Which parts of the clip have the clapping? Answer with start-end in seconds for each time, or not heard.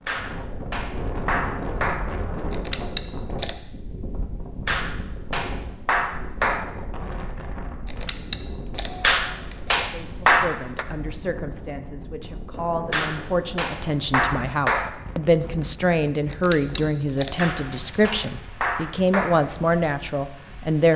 0.1-2.0, 4.7-6.7, 9.0-10.8, 12.9-14.9, 17.4-19.4.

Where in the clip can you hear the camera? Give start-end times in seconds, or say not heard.
2.5-3.5, 7.8-9.8, 16.3-18.3.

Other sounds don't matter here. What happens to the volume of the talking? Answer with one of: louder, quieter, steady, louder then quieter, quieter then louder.
louder.